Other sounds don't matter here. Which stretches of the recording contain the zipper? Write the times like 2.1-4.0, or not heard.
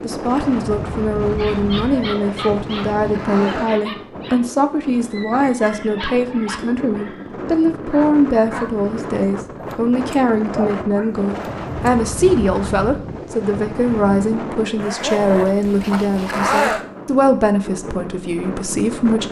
1.7-3.8, 14.8-16.9.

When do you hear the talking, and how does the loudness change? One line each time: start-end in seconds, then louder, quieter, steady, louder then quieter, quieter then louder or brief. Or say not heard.
0.0-19.2 steady.